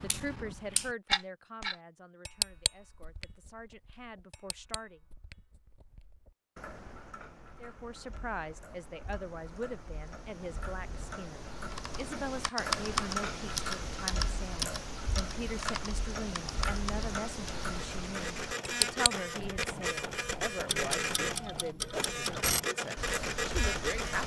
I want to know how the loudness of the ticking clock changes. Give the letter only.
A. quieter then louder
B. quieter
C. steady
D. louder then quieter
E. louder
A.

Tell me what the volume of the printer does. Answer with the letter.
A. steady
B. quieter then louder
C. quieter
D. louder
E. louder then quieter
A.